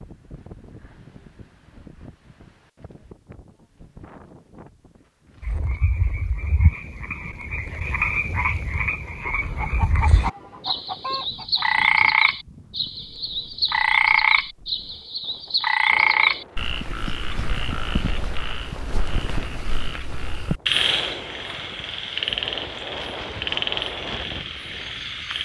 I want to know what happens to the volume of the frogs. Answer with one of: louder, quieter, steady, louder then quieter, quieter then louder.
louder then quieter.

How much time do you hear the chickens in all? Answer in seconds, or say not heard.
3 s.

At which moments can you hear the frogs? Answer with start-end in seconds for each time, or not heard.
5.4-25.4.